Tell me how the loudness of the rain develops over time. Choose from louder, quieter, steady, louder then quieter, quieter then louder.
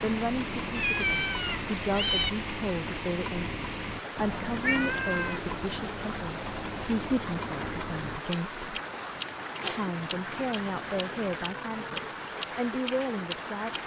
steady.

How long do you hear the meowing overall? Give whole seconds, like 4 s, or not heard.
5 s.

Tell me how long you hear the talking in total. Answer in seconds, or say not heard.
13 s.